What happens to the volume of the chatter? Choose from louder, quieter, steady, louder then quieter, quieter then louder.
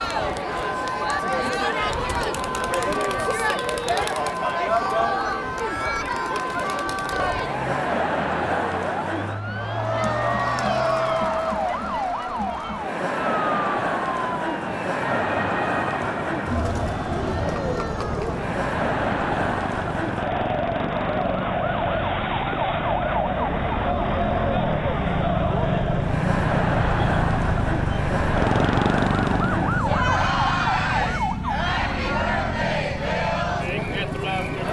steady.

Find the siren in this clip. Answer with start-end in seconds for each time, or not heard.
0.0-34.6.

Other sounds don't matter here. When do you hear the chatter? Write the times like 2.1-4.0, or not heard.
0.0-34.6.